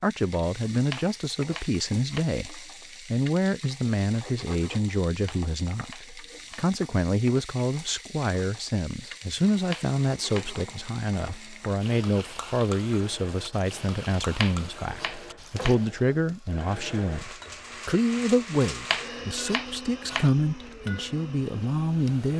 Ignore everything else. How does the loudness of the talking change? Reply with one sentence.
The loudness of the talking stays about the same.